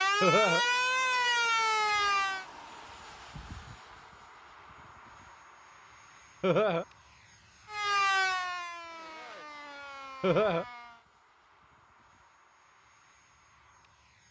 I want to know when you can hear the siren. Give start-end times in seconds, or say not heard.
0.0-2.5, 7.7-11.1.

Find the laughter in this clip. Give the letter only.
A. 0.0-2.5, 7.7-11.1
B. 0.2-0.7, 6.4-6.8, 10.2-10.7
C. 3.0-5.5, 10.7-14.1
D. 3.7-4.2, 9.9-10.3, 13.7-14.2
B.